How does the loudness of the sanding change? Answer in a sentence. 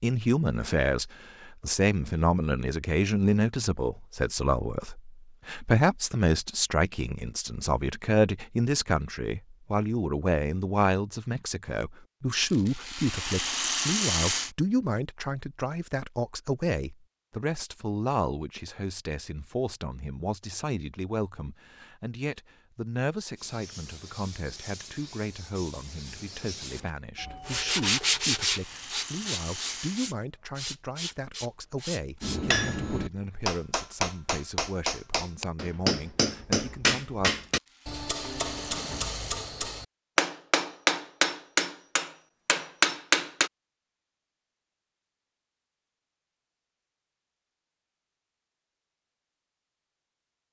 The volume of the sanding goes up, then down.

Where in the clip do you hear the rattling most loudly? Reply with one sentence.
The loudest moment of the rattling is at 14 seconds.